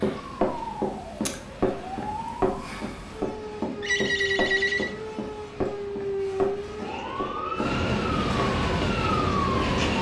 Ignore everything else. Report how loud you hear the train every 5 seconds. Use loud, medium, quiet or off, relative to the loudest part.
quiet, loud.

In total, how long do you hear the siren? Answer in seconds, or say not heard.
10 s.